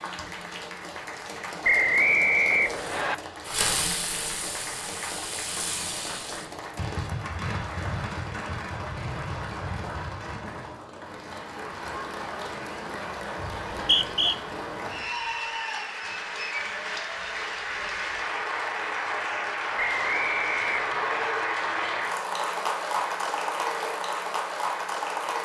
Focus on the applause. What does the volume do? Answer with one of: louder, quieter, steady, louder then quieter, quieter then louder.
louder.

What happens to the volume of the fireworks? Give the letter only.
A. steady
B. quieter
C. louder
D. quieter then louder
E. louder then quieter
B.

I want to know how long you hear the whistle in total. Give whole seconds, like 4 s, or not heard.
4 s.